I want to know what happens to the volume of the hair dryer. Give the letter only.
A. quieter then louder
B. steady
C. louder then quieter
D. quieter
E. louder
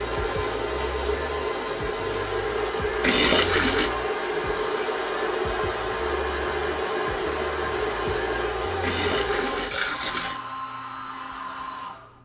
D.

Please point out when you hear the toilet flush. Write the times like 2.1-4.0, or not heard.
3.0-3.9, 8.8-10.4.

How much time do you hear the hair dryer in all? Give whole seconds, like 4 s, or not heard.
12 s.